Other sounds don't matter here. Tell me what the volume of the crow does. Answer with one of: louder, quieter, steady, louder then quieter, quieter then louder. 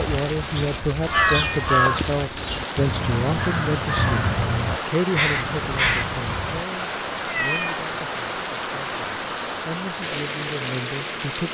quieter then louder.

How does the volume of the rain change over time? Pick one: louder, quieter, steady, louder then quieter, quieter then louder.
steady.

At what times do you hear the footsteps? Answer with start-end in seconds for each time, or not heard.
not heard.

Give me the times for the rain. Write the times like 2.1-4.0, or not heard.
0.0-11.5.